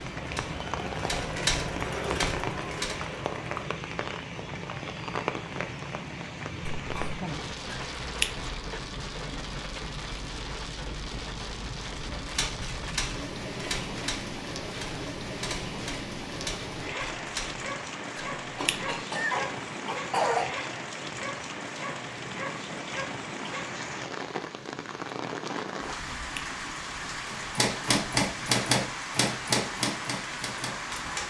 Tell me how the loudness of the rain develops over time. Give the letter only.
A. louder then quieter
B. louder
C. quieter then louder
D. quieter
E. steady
E.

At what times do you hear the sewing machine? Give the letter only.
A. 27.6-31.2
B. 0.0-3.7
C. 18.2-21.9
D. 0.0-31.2
B.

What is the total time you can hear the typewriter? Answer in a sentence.
You can hear the typewriter for 12 seconds altogether.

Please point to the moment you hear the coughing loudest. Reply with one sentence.
The loudest moment of the coughing is at 20 seconds.